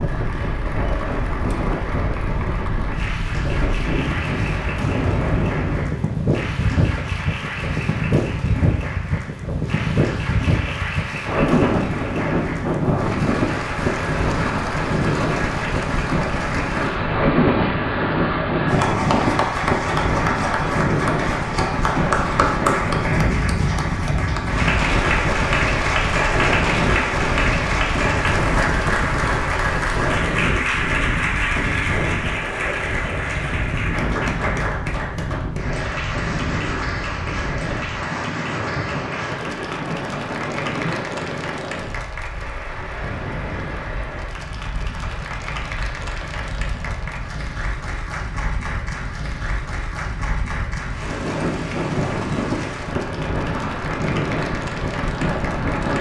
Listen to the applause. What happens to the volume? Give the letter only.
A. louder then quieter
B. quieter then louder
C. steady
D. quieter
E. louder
A.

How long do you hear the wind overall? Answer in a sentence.
The wind can be heard for 56 seconds in total.